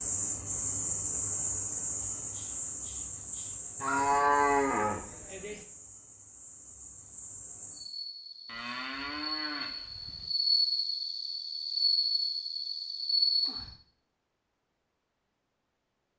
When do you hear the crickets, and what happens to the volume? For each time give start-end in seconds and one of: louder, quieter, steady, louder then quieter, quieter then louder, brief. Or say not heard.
0.0-13.7 quieter then louder.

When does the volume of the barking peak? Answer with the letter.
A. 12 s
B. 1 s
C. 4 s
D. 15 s
C.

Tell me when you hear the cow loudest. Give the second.
4 s.